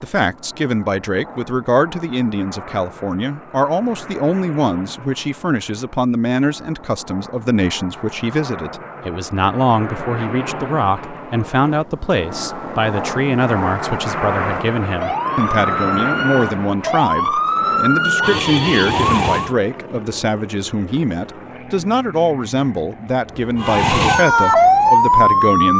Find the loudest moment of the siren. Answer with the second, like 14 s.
25 s.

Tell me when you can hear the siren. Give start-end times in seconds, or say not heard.
14.4-19.6, 23.6-25.7.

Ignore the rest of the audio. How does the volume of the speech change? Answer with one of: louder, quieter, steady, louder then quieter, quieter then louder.
steady.